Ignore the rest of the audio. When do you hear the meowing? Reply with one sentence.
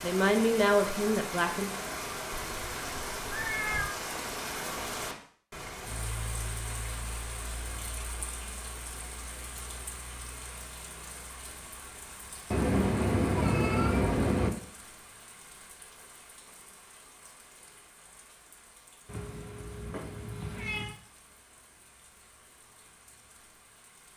You can hear the meowing from 2.3 to 4.0 s, from 12.5 to 14.5 s and from 19.1 to 20.9 s.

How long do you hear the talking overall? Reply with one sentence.
You can hear the talking for 2 seconds altogether.